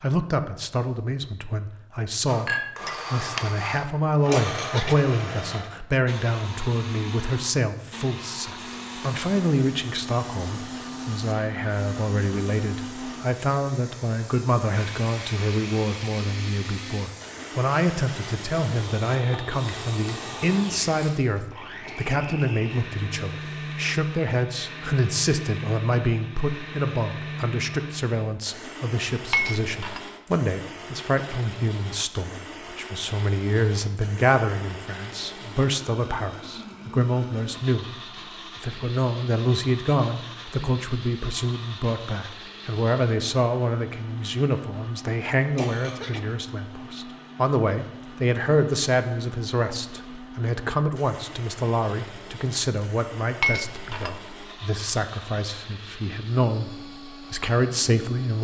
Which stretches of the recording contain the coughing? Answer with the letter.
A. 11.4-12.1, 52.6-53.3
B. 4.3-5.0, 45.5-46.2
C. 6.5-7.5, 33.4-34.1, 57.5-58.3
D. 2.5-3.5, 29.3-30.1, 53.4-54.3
B.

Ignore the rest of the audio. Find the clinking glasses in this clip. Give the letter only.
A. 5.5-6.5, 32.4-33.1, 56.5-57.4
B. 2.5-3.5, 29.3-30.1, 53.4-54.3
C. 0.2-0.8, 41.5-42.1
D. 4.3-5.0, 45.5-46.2
B.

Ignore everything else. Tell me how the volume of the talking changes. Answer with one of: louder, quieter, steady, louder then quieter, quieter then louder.
steady.